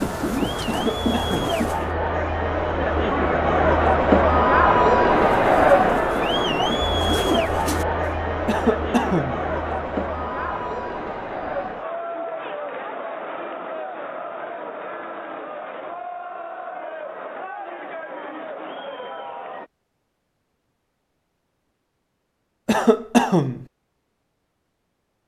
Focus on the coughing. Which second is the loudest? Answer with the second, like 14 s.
23 s.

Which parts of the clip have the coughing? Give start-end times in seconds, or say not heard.
0.7-1.6, 8.4-9.4, 22.6-23.6.